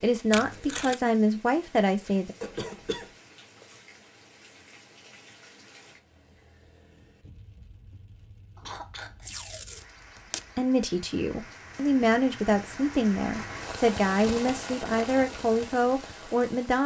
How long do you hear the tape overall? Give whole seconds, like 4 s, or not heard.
2 s.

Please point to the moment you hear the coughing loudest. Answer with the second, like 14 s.
3 s.